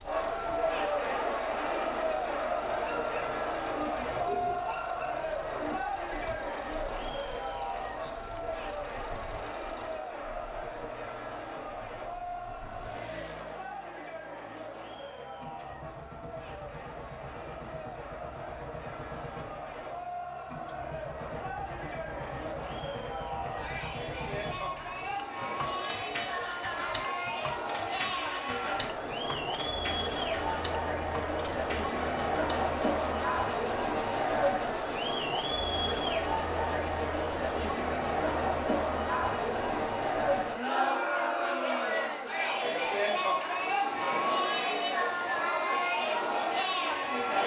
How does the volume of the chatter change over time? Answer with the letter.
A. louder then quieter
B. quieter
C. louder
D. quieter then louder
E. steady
D.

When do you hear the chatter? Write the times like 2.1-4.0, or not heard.
0.0-47.4.